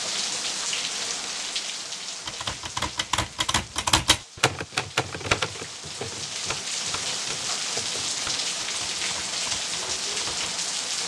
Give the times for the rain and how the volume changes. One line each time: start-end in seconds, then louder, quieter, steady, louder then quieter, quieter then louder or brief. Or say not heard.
0.0-11.0 quieter then louder.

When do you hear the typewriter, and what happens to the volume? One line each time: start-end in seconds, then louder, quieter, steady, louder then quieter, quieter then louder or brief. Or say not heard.
2.2-10.6 quieter.